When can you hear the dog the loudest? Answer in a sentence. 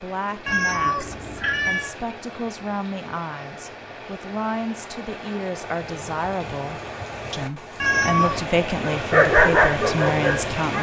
The loudest moment of the dog is at 9 seconds.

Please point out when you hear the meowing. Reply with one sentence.
You can hear the meowing from 0.5 to 1.9 s and from 7.8 to 8.5 s.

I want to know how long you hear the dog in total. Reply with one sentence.
The dog can be heard for 2 seconds in total.